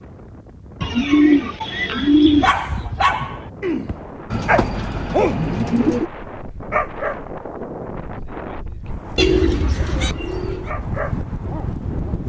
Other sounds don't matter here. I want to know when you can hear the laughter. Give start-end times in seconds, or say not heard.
not heard.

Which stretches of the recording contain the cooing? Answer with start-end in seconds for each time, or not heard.
0.8-2.5, 4.3-6.0, 9.2-10.7.